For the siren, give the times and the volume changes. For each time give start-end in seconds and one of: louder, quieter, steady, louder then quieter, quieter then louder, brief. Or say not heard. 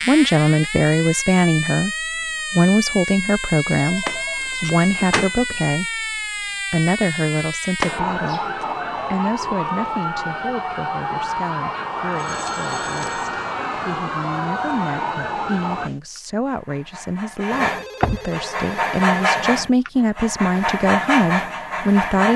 0.0-15.9 steady.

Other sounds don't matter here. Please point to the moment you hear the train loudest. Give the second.
19 s.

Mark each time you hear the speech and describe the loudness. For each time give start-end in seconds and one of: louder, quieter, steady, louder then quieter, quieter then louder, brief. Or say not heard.
0.1-22.3 quieter then louder.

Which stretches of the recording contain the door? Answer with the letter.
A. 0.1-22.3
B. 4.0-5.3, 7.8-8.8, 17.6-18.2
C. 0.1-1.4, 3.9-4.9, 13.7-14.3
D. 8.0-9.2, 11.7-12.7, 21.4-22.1
B.